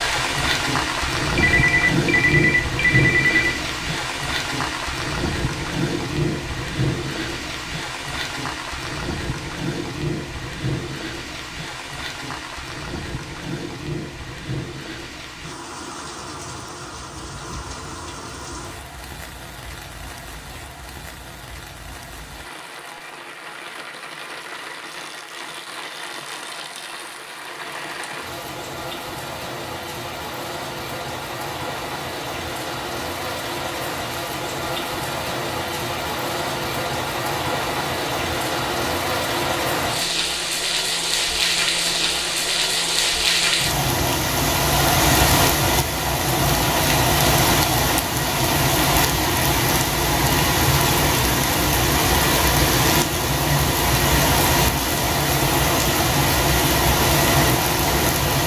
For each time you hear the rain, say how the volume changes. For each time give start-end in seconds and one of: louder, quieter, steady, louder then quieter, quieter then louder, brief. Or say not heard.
0.0-58.4 quieter then louder.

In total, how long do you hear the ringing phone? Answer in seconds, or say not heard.
2 s.